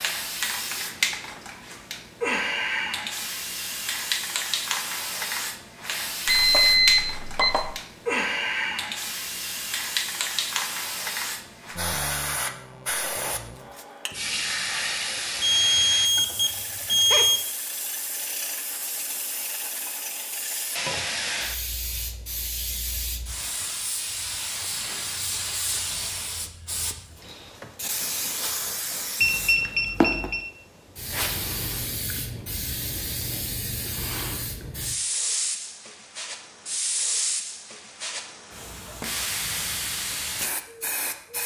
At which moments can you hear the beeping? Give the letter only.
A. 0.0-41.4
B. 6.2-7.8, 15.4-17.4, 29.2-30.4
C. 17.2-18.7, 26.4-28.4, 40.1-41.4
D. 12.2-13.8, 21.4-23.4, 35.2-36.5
B.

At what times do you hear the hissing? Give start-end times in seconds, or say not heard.
0.0-41.4.